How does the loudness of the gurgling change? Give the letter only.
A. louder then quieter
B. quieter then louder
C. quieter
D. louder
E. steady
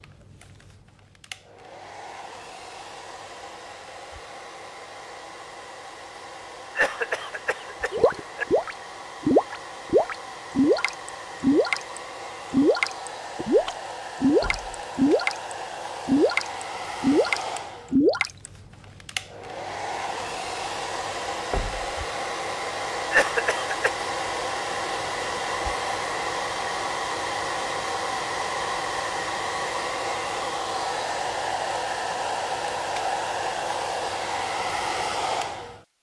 E.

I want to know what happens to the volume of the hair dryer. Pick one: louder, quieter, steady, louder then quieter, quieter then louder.
louder.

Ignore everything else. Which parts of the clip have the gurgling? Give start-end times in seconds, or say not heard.
7.9-18.5.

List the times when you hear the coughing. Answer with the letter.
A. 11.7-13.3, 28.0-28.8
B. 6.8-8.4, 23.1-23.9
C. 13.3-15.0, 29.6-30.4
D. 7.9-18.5
B.